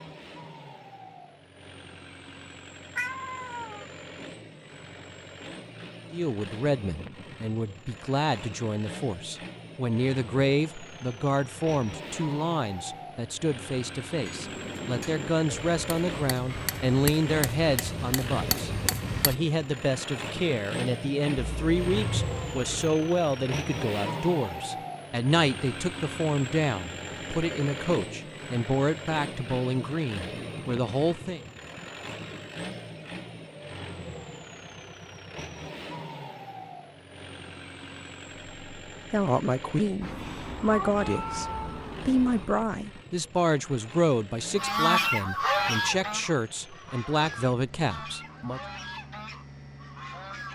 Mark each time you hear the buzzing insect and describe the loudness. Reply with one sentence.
You can't hear the buzzing insect here.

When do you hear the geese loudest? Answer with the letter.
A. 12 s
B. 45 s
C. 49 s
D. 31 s
B.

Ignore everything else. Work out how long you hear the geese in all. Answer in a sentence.
The geese can be heard for 6 seconds in total.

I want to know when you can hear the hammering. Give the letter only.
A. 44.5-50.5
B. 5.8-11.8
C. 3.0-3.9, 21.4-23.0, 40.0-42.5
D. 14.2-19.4
D.